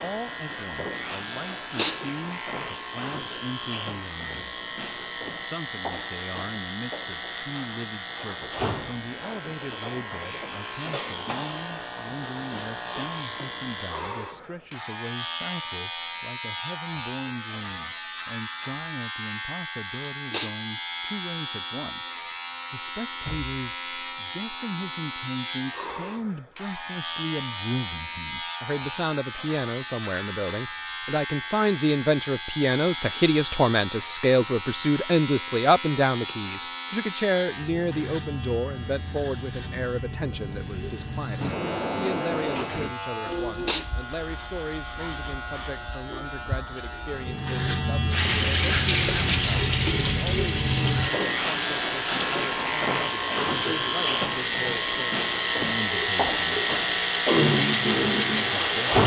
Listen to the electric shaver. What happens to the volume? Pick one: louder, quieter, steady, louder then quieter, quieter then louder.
louder.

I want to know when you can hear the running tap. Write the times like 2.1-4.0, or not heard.
48.1-59.0.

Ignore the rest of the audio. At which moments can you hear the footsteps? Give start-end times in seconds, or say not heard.
not heard.